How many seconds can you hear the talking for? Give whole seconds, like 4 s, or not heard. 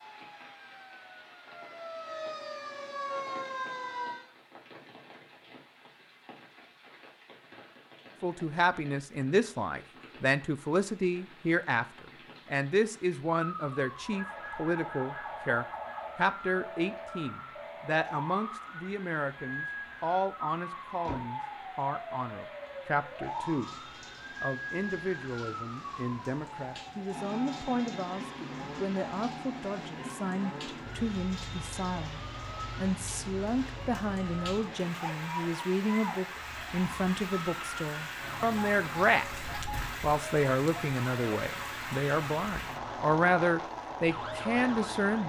36 s.